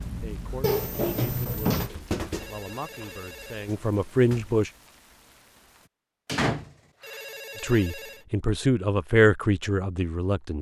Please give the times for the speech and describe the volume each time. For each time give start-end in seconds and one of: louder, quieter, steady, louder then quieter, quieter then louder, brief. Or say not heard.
0.1-4.7 louder
7.6-10.5 brief.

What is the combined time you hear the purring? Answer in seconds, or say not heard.
not heard.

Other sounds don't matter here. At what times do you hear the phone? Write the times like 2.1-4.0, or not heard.
2.3-3.8, 7.0-8.2.